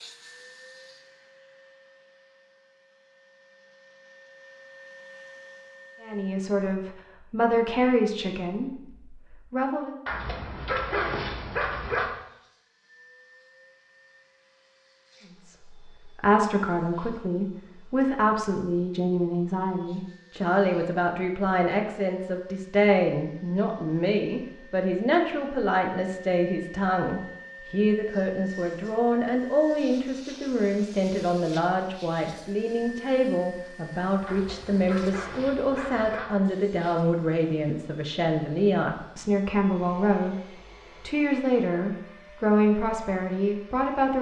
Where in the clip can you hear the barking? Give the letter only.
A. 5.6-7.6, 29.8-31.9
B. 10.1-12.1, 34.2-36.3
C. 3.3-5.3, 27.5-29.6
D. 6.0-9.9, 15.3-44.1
B.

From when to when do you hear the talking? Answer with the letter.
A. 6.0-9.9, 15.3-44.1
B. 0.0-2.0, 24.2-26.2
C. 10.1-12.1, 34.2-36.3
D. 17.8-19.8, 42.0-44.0
A.